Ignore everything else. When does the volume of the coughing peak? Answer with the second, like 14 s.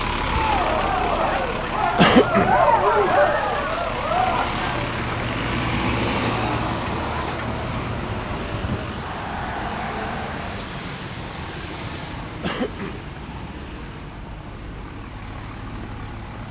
2 s.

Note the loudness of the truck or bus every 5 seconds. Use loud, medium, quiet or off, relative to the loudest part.
loud, loud, medium, medium.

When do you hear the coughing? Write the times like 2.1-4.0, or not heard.
1.9-2.5, 12.4-13.0.